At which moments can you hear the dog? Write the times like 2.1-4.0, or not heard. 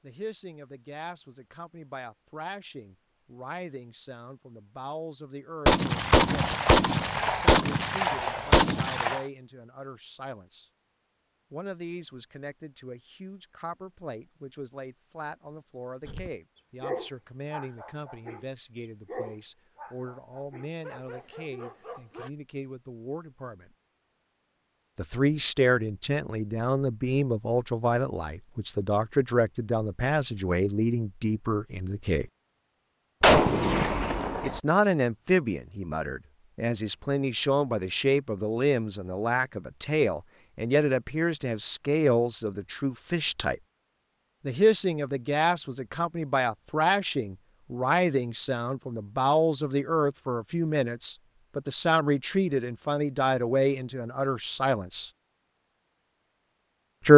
16.1-18.4, 19.1-22.3.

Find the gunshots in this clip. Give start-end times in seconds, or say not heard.
5.7-9.2, 33.2-34.6.